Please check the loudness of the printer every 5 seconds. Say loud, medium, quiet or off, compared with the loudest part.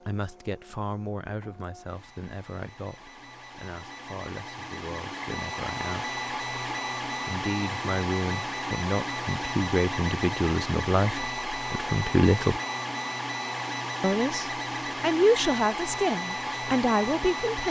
quiet, loud, loud, loud.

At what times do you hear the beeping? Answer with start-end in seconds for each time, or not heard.
not heard.